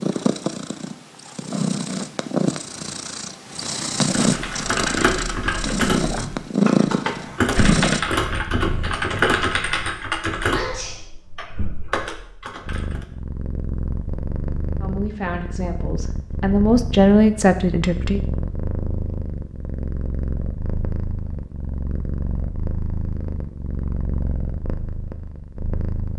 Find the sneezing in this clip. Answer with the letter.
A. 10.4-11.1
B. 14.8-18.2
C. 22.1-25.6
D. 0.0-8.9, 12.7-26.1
A.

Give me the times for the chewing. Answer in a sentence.
The chewing can't be heard in this clip.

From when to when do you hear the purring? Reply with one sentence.
You can hear the purring from 0.0 to 8.9 s and from 12.7 to 26.1 s.